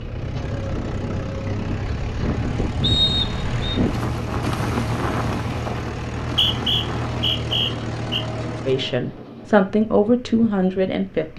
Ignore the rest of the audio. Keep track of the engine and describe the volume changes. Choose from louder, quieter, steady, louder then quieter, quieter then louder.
steady.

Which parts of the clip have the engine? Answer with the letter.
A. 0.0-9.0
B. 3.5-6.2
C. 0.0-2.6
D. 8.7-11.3
A.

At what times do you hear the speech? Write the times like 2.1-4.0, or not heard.
8.7-11.3.